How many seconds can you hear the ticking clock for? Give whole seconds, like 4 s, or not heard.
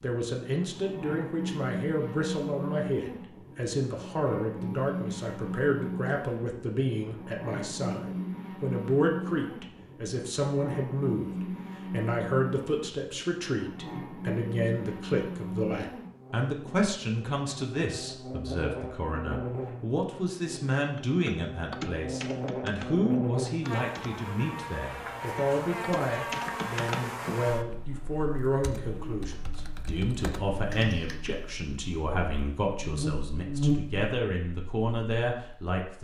not heard.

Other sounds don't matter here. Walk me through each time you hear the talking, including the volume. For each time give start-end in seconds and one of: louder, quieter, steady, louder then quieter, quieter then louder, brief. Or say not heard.
0.0-35.9 steady.